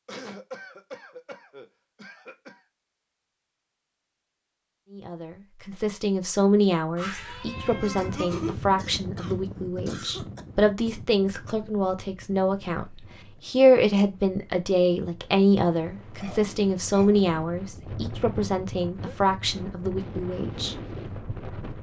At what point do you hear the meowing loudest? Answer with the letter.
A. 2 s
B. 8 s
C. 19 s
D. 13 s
B.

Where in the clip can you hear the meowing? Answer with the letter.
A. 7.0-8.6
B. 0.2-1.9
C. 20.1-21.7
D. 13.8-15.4
A.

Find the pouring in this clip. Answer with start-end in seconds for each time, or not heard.
not heard.